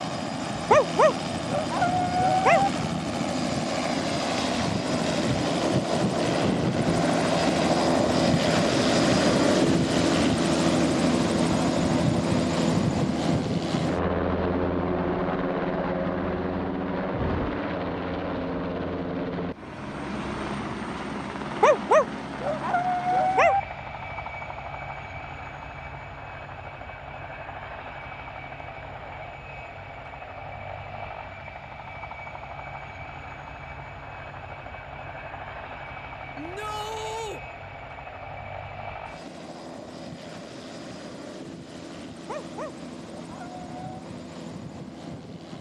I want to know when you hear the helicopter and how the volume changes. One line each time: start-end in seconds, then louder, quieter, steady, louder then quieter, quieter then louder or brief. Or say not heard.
0.0-45.5 quieter.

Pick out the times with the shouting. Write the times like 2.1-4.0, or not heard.
36.4-37.4.